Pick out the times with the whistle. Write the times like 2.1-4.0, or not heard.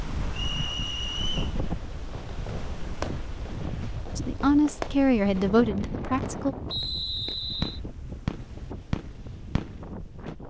0.3-1.6, 6.7-7.8.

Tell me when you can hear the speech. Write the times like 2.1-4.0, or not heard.
4.2-6.5.